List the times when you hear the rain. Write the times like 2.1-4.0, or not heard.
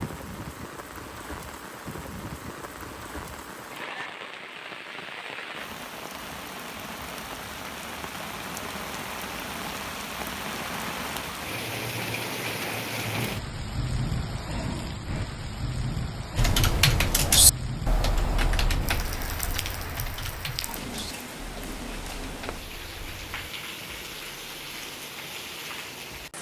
0.0-26.3.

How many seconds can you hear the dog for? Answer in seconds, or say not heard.
not heard.